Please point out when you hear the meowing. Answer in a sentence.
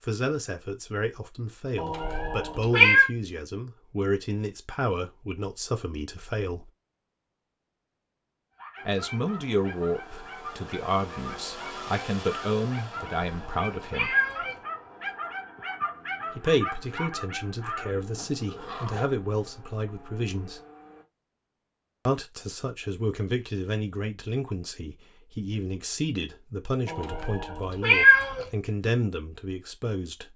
The meowing can be heard from 1.8 to 3.1 s, from 12.9 to 14.6 s and from 26.9 to 28.4 s.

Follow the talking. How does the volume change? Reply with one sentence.
The loudness of the talking stays about the same.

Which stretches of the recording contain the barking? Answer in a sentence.
You can hear the barking from 8.6 to 19.1 s.